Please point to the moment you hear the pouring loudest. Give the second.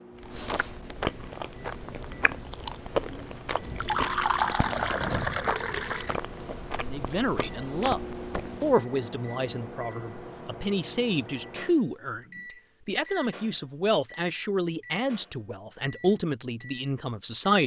4 s.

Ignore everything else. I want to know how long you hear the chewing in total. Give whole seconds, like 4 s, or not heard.
9 s.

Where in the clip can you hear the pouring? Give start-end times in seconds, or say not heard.
3.6-6.2.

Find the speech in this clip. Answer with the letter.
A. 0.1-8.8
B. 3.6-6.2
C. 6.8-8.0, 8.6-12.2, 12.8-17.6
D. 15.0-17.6
C.